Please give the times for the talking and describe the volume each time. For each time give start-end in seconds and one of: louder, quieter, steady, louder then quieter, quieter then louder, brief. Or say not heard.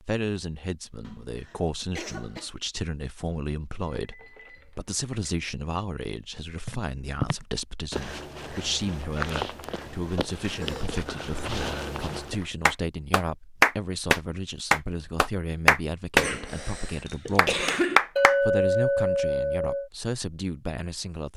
0.0-17.7 steady
18.4-21.3 brief.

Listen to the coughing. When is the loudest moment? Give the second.
18 s.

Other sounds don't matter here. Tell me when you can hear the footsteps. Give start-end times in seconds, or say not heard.
6.7-12.4.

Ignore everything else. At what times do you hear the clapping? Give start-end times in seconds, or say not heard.
12.7-16.2, 17.4-18.4.